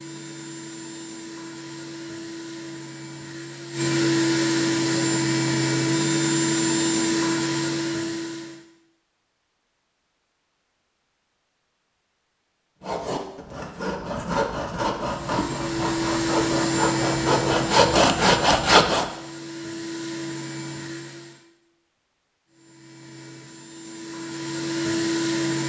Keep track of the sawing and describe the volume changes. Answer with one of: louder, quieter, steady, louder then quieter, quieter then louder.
louder.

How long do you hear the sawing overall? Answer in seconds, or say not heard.
6 s.